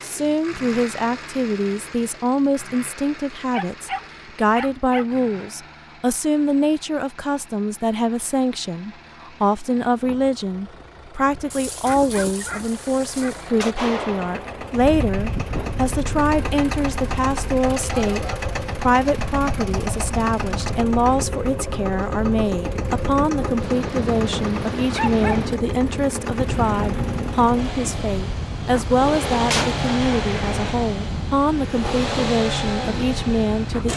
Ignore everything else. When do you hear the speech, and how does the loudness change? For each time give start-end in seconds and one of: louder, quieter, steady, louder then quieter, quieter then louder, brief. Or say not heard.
0.0-33.9 steady.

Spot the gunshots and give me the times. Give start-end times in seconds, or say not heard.
13.6-14.8, 29.4-30.8.